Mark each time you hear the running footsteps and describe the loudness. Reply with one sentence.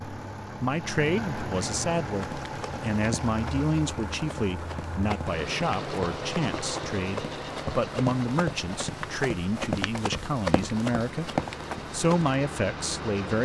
The running footsteps can be heard from 2.0 to 12.3 s, getting louder.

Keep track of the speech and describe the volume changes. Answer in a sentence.
The volume of the speech stays about the same.